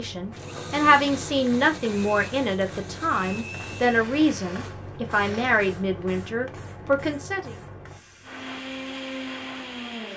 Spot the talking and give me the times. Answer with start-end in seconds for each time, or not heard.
0.0-7.5.